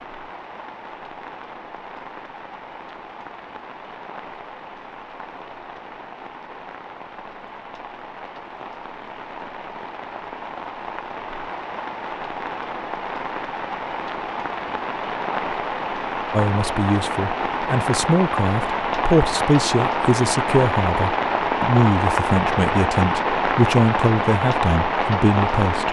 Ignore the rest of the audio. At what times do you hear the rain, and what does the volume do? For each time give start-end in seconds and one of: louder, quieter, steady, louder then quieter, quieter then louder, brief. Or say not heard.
0.0-25.8 louder.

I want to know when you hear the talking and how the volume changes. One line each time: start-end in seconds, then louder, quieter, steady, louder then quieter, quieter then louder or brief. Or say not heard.
16.3-25.8 steady.